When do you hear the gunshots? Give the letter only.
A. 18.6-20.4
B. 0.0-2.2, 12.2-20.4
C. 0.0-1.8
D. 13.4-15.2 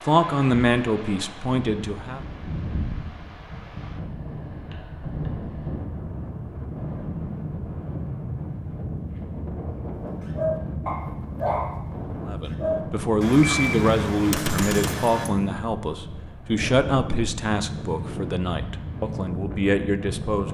D.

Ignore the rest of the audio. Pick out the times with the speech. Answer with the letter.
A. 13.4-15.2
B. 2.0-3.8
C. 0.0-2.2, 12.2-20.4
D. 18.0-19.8
C.